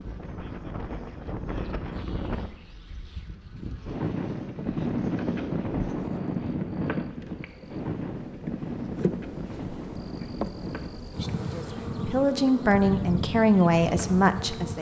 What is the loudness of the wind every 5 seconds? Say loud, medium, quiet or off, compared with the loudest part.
loud, loud, medium.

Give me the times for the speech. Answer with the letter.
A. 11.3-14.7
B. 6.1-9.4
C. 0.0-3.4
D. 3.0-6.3
A.